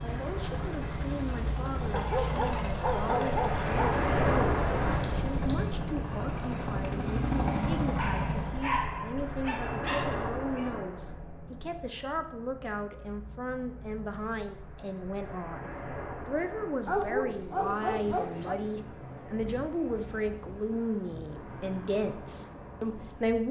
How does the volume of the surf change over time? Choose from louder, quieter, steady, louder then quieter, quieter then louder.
quieter.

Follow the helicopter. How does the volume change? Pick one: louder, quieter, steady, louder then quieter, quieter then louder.
louder.